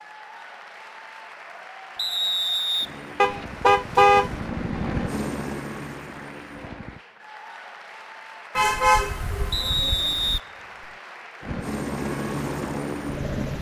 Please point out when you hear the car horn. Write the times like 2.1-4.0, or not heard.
3.1-4.4, 8.6-10.4.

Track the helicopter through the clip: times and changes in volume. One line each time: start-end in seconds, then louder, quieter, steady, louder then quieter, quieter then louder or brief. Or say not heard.
2.8-7.0 louder then quieter
11.4-13.5 brief.